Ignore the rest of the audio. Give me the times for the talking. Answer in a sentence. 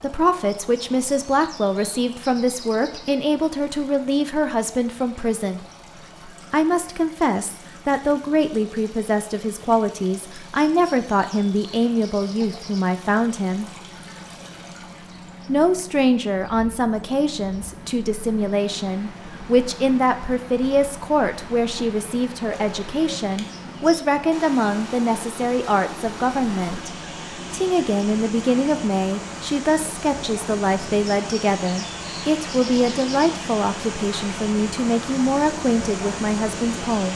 The talking can be heard from 0.0 to 5.6 s, from 6.5 to 13.7 s, from 15.4 to 26.9 s and from 27.5 to 37.1 s.